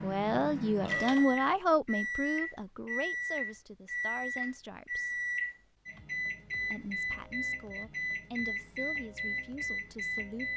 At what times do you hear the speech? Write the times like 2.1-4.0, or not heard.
0.0-5.2, 6.7-10.5.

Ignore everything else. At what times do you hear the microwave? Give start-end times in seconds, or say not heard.
0.0-10.5.